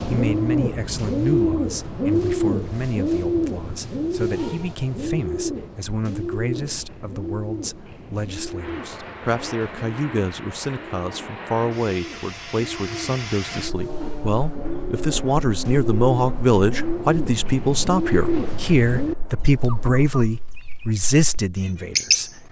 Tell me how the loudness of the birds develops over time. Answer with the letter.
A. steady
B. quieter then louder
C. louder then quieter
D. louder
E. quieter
B.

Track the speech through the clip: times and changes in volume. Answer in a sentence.
The speech can be heard from 0.0 to 22.4 s, getting louder.